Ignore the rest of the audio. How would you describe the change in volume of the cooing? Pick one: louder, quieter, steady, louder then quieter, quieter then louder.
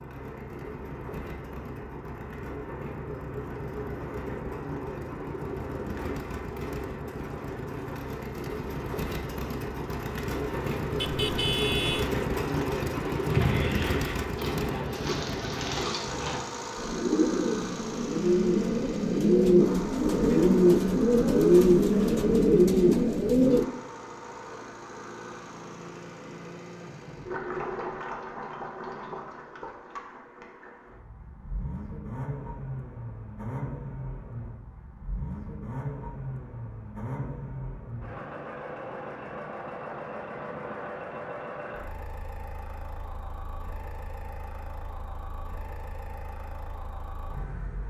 louder.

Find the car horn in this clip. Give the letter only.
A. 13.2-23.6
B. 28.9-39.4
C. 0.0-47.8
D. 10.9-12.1
D.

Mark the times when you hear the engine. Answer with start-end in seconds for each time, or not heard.
0.0-47.8.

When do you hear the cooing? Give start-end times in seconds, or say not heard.
13.2-23.6.